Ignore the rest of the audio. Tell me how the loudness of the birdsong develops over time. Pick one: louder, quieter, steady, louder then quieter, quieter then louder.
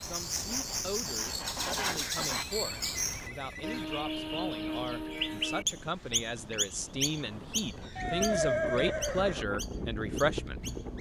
quieter.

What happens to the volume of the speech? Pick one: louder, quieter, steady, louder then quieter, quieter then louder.
louder.